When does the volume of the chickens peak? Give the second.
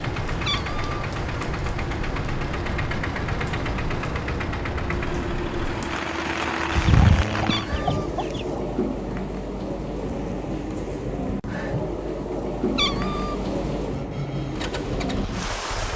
7 s.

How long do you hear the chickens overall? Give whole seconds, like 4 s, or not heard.
2 s.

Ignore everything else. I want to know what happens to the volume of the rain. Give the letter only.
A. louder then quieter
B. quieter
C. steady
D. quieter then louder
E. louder
C.